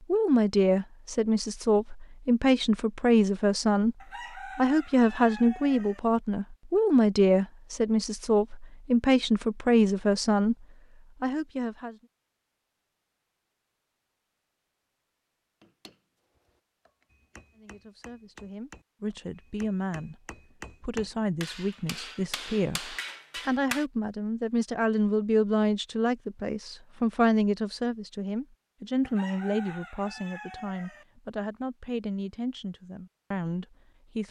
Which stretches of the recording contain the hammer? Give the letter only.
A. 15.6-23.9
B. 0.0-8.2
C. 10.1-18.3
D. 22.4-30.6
A.